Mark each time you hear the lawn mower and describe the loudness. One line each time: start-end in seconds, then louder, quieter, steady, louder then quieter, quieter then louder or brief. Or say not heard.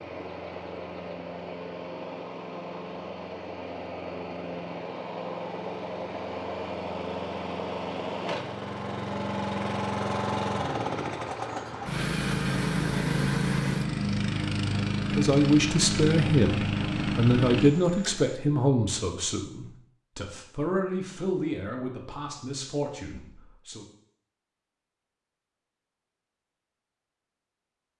0.0-18.4 louder.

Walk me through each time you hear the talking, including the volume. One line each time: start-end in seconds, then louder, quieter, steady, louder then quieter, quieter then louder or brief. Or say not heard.
15.1-23.9 quieter.